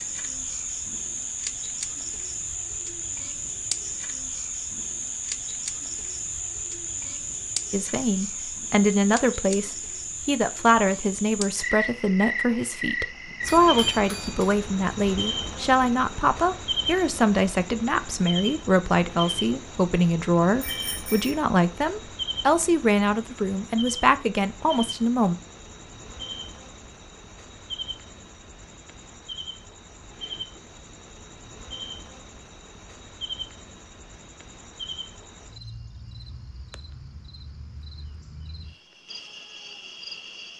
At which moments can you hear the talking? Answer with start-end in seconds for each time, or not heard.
7.7-25.4.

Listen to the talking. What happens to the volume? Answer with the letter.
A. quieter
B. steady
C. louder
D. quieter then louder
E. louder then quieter
B.